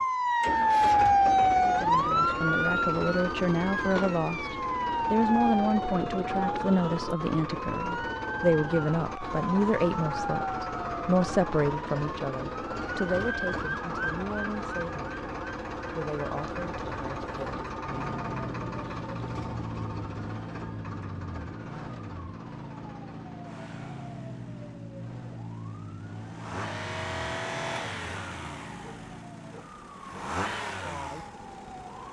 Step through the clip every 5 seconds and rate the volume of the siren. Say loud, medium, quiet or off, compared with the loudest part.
loud, medium, medium, quiet, quiet, quiet, quiet.